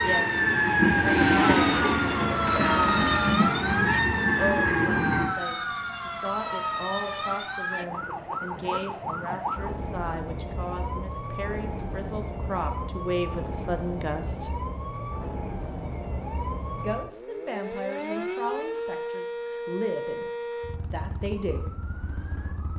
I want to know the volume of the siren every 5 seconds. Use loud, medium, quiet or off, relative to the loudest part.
loud, medium, medium, medium, quiet.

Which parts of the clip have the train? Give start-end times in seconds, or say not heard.
0.0-5.3.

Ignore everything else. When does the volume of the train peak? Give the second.
1 s.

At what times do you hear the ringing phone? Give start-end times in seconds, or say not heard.
2.2-3.4.